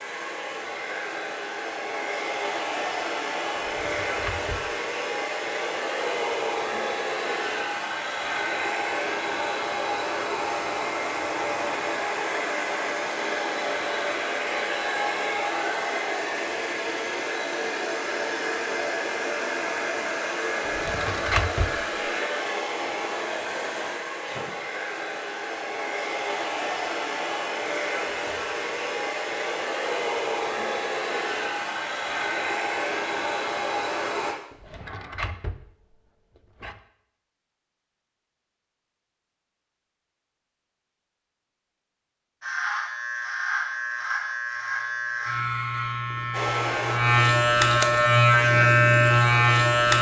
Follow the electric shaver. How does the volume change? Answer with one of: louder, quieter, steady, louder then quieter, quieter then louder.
louder.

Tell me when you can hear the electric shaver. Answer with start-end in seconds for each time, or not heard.
42.4-49.9.